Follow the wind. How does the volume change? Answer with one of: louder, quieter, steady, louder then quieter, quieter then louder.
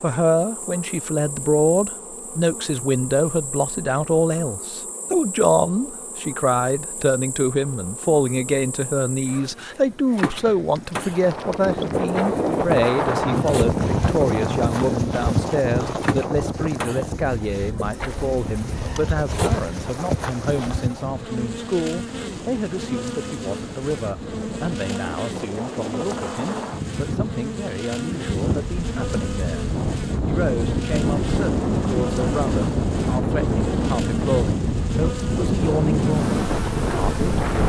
quieter then louder.